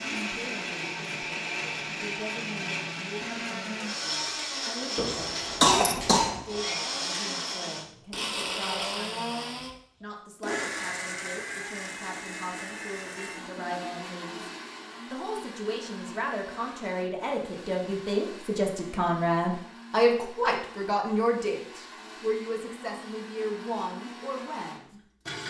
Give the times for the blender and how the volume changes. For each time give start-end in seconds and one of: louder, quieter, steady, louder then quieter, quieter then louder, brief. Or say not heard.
0.0-25.4 quieter.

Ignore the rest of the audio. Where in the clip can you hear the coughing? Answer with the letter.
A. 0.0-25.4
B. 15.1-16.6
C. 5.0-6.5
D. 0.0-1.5
C.